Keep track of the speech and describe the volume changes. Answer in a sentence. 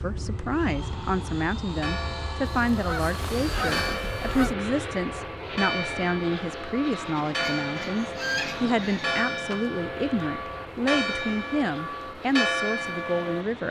The loudness of the speech stays about the same.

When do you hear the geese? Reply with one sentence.
You can hear the geese from 2.5 to 4.5 s and from 7.3 to 9.2 s.